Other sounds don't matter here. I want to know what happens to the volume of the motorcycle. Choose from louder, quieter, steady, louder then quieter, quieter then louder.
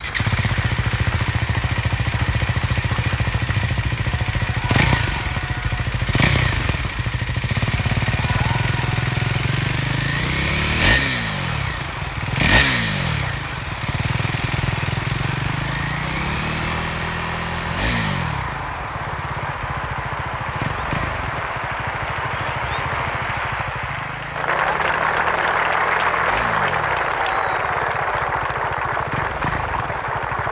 quieter.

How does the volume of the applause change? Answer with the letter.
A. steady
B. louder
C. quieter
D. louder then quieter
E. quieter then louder
B.